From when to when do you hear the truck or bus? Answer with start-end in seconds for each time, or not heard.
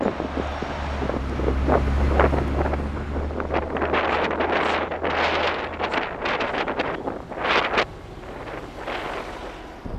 0.2-9.9.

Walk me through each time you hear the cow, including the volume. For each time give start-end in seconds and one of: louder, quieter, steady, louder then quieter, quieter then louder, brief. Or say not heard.
not heard.